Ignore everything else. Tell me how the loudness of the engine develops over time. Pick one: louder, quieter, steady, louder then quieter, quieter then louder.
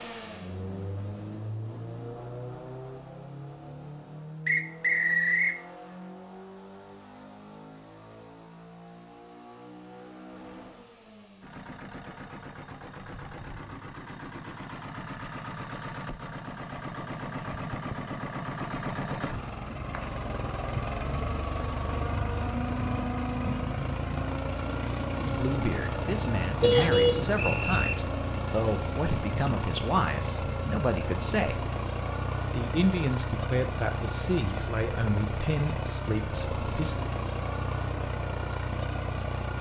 louder.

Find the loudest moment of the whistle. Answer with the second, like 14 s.
5 s.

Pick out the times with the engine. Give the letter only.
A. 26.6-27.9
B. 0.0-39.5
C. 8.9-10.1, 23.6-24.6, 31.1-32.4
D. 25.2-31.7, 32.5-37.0
B.